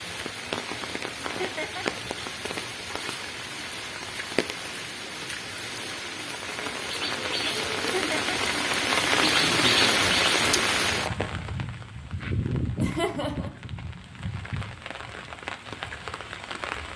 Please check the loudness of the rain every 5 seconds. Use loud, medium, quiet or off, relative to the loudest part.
medium, loud, loud, medium.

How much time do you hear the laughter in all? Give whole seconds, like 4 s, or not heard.
2 s.